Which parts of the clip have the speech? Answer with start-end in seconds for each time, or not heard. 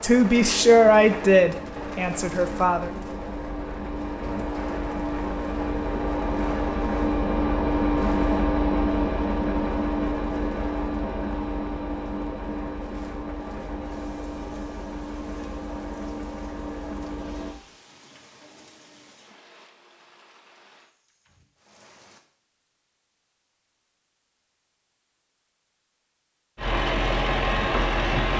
0.0-2.9.